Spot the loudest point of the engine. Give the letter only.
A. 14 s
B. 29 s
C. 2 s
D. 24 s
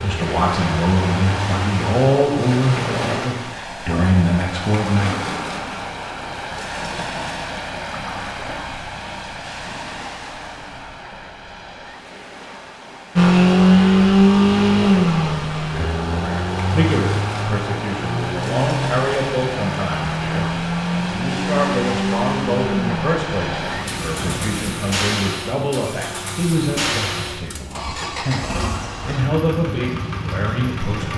A.